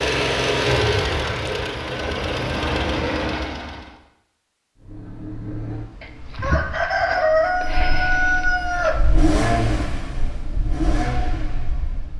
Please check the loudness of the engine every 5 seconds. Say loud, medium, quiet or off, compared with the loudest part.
loud, medium, medium.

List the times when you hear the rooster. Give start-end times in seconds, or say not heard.
6.0-9.3.